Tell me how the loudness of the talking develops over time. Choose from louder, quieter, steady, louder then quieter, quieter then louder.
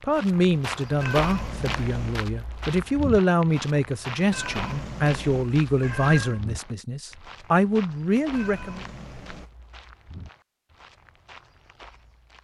steady.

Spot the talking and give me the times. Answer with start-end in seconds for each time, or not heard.
0.0-8.8.